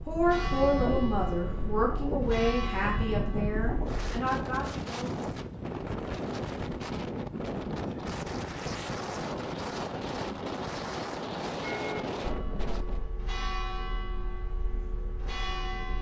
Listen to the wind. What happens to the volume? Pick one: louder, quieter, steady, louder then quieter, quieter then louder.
steady.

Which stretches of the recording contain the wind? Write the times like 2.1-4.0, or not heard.
0.0-13.1.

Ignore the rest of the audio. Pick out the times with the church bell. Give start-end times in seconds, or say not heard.
0.0-4.0, 11.6-15.9.